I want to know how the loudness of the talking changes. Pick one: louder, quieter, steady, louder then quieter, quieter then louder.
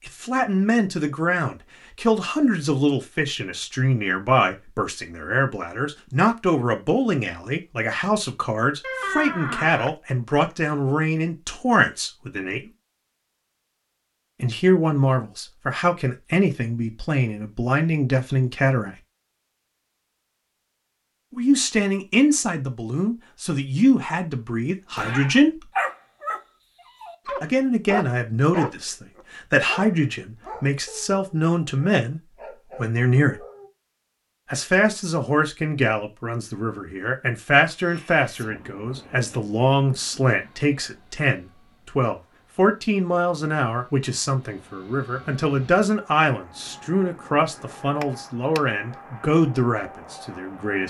steady.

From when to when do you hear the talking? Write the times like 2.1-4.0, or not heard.
0.1-12.7, 14.4-18.9, 21.3-25.7, 27.4-33.5, 34.5-50.8.